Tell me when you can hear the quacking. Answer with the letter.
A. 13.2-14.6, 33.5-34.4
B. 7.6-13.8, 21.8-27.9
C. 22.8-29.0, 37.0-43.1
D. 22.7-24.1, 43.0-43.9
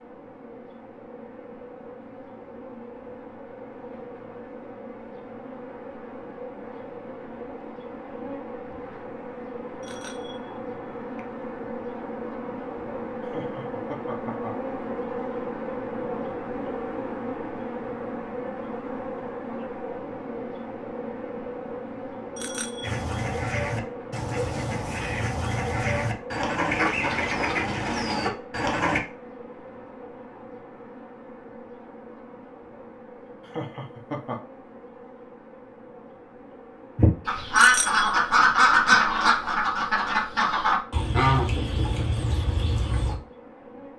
C.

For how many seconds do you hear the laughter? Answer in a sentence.
The laughter can be heard for 2 seconds in total.